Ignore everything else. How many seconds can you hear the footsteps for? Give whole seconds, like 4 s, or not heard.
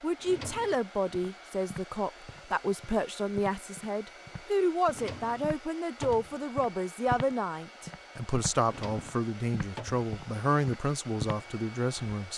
11 s.